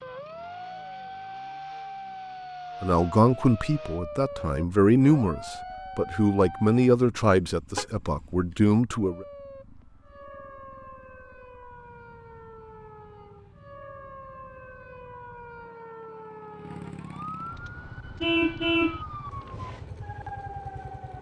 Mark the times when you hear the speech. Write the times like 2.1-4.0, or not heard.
2.8-9.2.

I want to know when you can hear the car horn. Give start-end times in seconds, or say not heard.
18.2-19.0.